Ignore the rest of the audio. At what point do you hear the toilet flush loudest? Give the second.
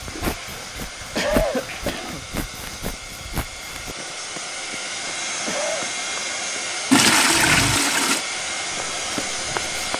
7 s.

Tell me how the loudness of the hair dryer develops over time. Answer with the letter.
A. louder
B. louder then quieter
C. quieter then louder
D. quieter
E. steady
A.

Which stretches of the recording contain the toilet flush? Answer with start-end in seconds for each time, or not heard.
0.1-2.3, 6.9-8.2.